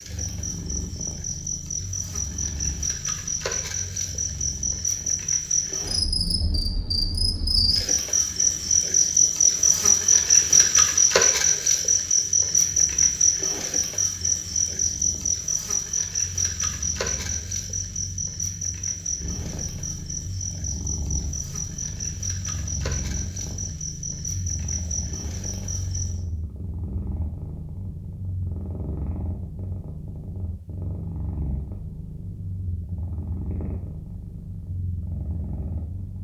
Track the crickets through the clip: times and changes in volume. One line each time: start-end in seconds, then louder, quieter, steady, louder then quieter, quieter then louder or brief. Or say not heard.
0.0-26.2 louder then quieter.